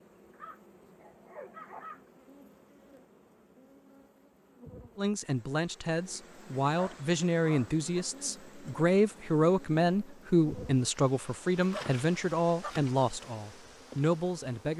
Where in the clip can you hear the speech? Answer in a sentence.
The speech can be heard from 5.0 to 14.7 s.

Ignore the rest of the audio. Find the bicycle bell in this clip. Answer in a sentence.
You can't hear the bicycle bell here.